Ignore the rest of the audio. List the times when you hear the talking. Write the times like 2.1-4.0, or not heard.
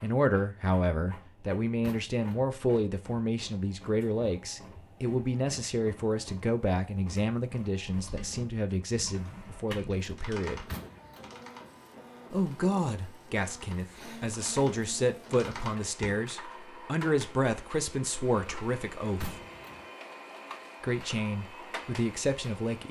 0.0-10.7, 12.3-19.4, 20.8-22.8.